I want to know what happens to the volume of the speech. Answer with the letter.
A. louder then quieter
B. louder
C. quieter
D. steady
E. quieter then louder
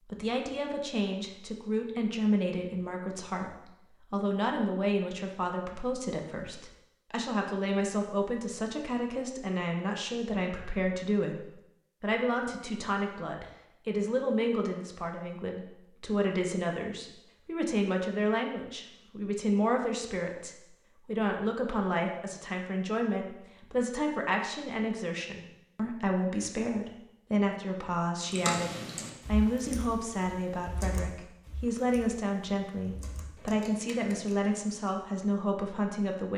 D.